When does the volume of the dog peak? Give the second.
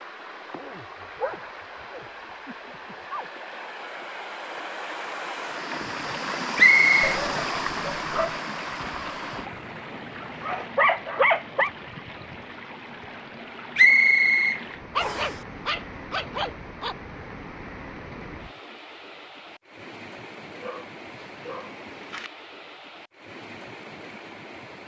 11 s.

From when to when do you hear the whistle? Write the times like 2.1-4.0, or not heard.
6.5-7.0, 13.8-15.3.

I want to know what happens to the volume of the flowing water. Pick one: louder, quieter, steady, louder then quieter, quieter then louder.
louder then quieter.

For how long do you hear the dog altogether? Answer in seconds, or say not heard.
9 s.